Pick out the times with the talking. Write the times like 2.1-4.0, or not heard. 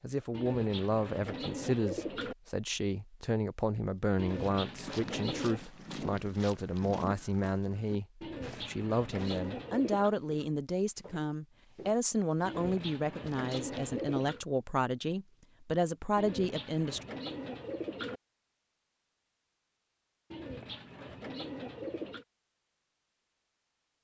0.0-17.1.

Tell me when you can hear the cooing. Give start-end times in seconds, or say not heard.
0.3-2.4, 4.2-5.7, 8.2-10.2, 12.4-14.4, 16.1-18.2, 20.3-22.2.